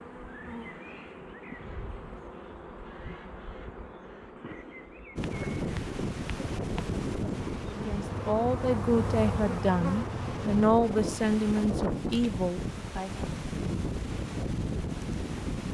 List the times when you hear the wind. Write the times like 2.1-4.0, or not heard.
5.2-15.6.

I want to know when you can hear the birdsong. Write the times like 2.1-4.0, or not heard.
not heard.